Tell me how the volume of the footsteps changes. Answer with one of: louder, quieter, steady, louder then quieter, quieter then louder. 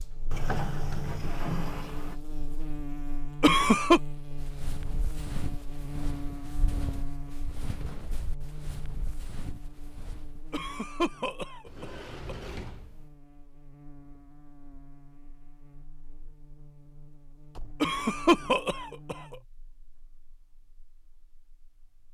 quieter.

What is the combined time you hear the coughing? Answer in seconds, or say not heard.
4 s.